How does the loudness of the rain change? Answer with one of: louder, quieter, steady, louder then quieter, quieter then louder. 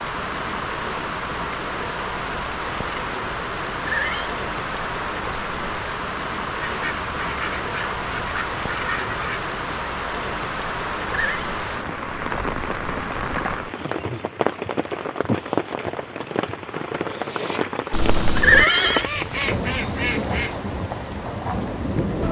steady.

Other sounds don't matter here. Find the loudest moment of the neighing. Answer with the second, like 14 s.
19 s.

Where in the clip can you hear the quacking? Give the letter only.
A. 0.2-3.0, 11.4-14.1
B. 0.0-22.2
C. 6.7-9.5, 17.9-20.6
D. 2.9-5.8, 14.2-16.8
C.